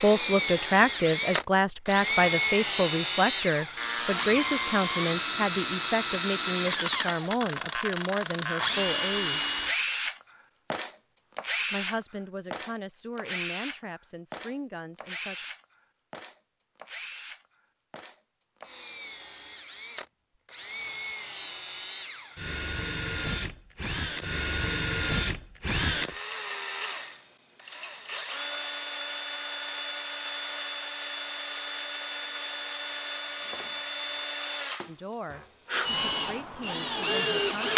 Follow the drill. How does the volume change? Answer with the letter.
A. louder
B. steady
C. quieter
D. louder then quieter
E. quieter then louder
E.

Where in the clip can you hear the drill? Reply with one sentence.
The drill can be heard from 0.0 to 37.7 s.